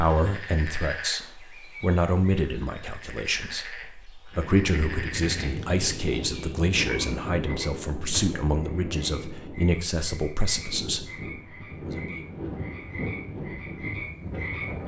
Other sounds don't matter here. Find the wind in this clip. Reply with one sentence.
The wind can be heard from 4.3 to 14.8 s.